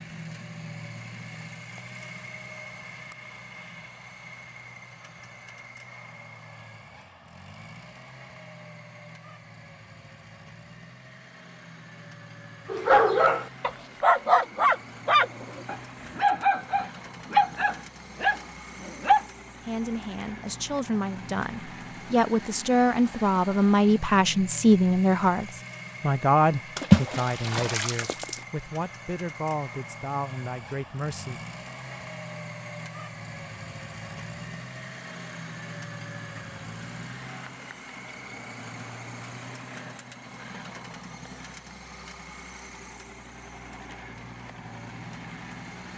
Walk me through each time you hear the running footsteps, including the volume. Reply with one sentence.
You can't hear the running footsteps here.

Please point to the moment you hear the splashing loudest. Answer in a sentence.
The volume of the splashing peaks at 27 seconds.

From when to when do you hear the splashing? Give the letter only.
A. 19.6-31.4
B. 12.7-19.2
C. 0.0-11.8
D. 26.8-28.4
D.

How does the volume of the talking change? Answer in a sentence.
The loudness of the talking goes up, then down.